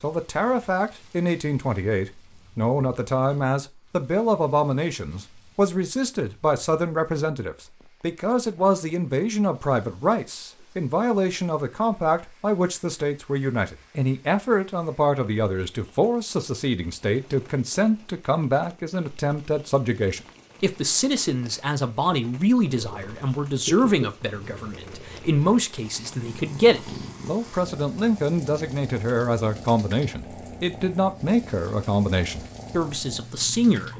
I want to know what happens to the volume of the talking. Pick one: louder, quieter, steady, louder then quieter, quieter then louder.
steady.